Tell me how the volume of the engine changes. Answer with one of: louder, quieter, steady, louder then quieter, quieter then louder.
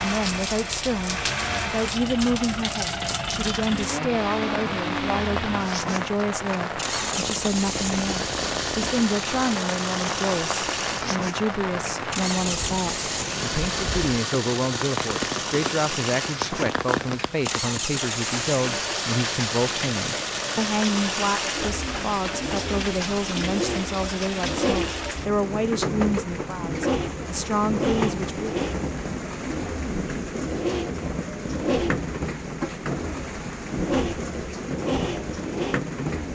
steady.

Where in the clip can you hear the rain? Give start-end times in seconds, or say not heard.
0.0-36.3.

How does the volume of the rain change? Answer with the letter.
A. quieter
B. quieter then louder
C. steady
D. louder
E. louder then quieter
C.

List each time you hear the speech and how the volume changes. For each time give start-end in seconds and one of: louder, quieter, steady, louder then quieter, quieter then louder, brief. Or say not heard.
0.0-28.4 steady.